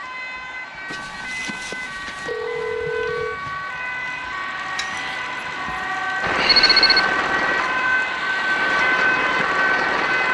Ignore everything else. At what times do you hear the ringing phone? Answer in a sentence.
The ringing phone can be heard from 0.8 to 3.4 s and from 6.5 to 7.0 s.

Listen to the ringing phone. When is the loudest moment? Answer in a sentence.
The volume of the ringing phone peaks at 7 seconds.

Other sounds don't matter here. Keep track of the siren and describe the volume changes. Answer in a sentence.
The loudness of the siren goes up.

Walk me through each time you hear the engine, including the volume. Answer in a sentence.
You can hear the engine from 6.2 to 10.3 s, getting quieter then louder.